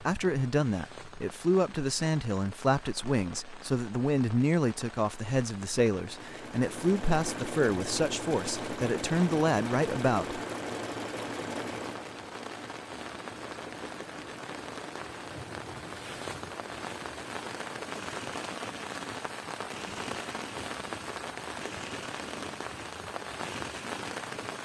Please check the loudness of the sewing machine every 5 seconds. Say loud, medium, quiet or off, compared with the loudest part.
off, loud, loud, medium, medium.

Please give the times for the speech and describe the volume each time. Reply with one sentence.
The speech can be heard from 0.0 to 10.4 s, at a steady volume.